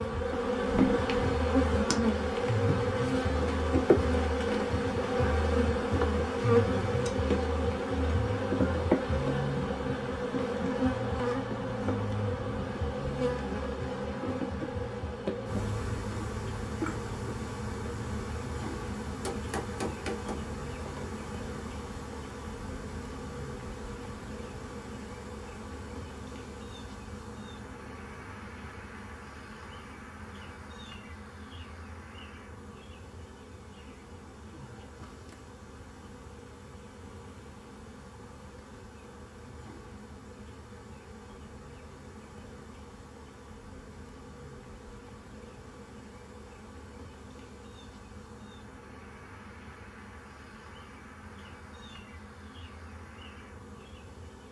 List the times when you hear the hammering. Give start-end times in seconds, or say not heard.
19.2-21.1.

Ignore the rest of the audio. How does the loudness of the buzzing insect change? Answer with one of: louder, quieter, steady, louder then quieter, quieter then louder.
quieter.